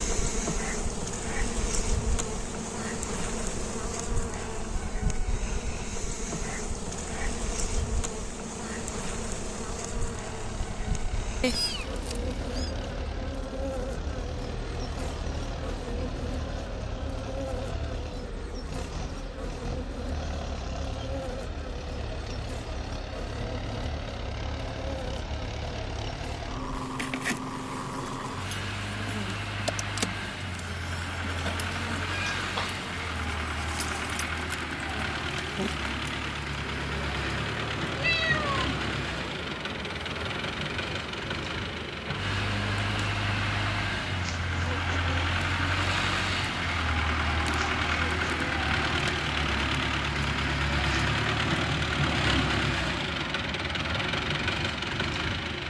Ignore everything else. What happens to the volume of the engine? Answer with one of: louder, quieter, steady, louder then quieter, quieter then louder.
louder.